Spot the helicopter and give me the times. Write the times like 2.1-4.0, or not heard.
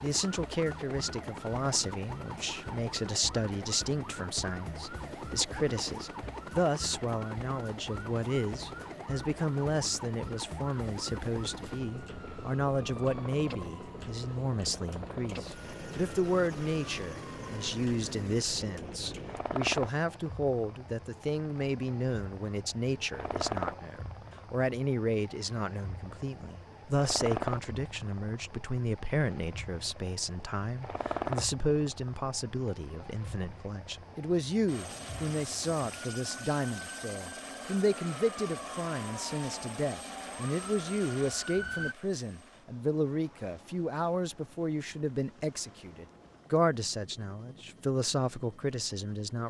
0.0-49.4.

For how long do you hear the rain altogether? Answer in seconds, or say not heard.
not heard.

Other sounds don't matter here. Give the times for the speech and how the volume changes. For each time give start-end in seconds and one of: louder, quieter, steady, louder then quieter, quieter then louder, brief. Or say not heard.
0.0-49.4 steady.